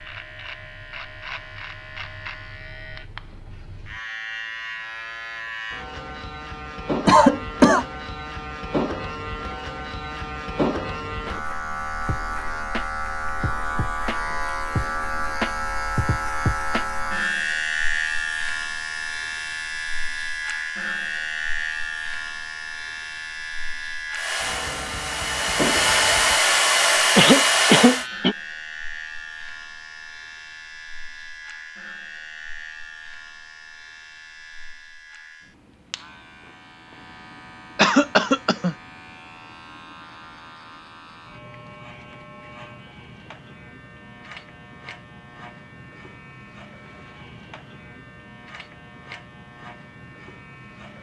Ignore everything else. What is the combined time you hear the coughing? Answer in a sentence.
You can hear the coughing for 3 seconds altogether.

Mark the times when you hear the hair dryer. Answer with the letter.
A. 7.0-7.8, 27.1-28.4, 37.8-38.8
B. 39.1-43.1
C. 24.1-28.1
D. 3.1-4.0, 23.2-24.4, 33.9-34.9
C.